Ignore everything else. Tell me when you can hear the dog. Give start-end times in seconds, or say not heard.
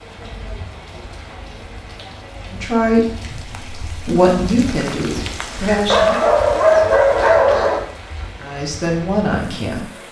5.9-7.8.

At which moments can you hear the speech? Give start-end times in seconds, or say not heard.
2.5-6.2, 8.4-9.9.